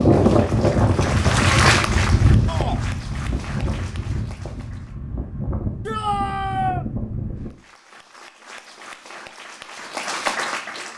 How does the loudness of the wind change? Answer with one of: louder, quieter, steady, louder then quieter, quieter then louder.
quieter.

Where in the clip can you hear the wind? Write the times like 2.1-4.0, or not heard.
0.0-7.5.